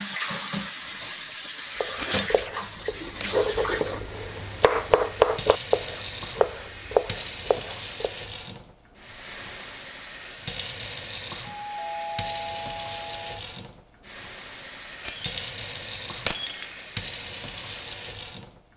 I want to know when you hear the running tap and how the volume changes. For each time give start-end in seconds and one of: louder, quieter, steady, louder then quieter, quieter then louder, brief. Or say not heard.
0.0-18.6 steady.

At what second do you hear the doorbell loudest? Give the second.
12 s.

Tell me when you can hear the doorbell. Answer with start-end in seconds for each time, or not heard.
0.8-1.5, 11.4-13.4.